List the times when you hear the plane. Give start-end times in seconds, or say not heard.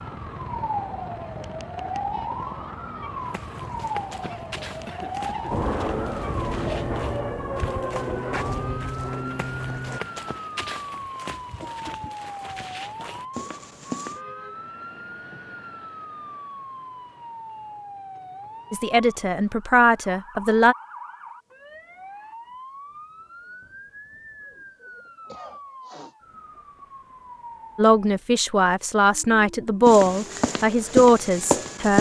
5.5-10.0.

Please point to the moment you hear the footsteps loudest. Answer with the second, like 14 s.
31 s.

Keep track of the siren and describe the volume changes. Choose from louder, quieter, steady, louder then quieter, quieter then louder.
quieter.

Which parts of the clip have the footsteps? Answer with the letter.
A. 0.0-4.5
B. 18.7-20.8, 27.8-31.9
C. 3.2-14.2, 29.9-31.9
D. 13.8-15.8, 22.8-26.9
C.